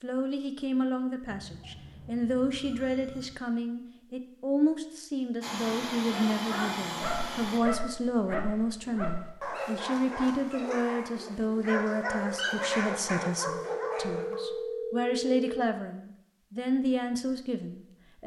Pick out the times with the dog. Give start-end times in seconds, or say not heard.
6.1-14.4.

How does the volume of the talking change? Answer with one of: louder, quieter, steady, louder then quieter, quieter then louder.
steady.